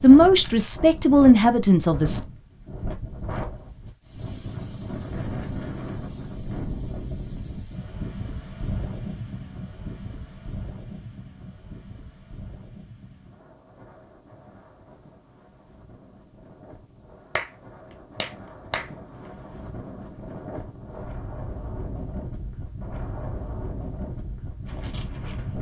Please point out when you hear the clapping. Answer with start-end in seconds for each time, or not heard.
17.4-19.3.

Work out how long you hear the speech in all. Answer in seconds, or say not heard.
2 s.